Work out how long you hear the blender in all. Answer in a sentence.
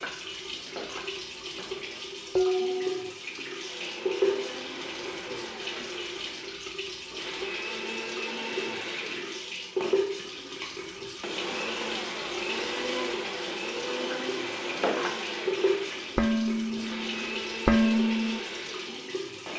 The blender can be heard for 16 seconds in total.